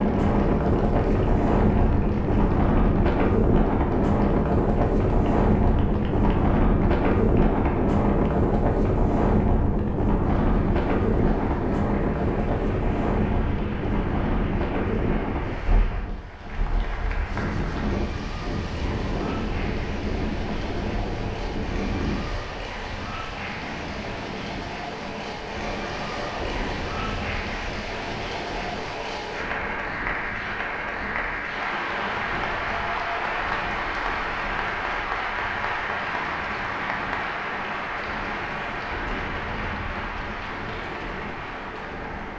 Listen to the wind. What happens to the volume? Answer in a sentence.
The loudness of the wind goes down.